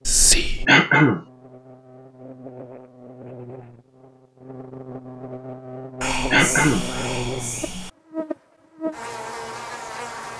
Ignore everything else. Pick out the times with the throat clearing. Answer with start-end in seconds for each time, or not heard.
0.7-1.2, 6.3-6.8.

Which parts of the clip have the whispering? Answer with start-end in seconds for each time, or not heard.
0.1-0.7, 6.0-7.9.